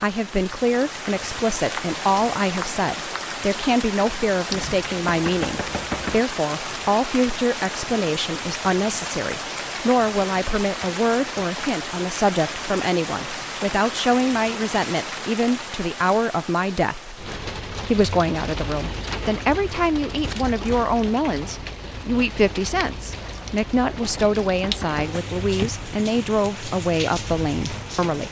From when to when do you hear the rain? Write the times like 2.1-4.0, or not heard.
0.0-28.2.